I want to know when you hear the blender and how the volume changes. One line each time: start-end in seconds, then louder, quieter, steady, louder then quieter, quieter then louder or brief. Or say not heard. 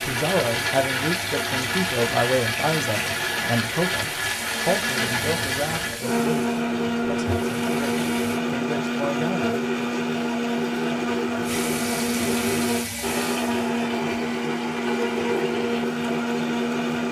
0.0-17.0 steady.